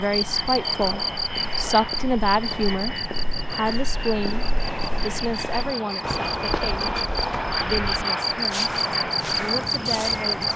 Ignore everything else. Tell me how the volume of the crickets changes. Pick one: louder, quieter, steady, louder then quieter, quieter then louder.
quieter then louder.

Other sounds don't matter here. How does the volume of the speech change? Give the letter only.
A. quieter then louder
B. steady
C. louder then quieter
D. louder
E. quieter
E.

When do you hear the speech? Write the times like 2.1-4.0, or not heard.
0.0-10.5.